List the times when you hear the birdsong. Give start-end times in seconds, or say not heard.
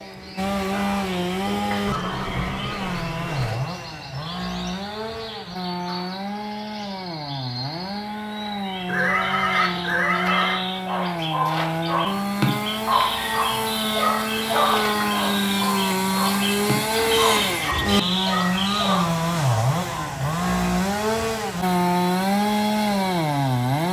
0.0-19.1.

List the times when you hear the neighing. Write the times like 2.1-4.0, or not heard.
1.9-3.6, 8.8-10.6, 17.1-17.9.